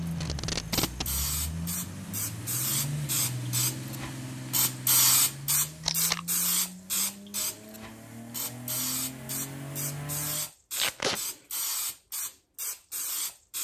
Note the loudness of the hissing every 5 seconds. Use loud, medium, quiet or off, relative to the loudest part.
loud, loud, medium.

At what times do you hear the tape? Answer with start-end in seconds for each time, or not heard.
0.1-1.1, 5.8-6.2, 10.8-11.2.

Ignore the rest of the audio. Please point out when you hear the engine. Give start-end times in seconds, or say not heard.
0.0-10.5.